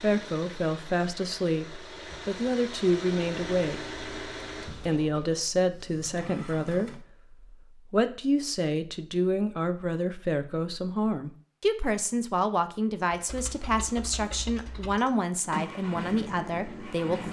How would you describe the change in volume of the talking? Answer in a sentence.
The loudness of the talking stays about the same.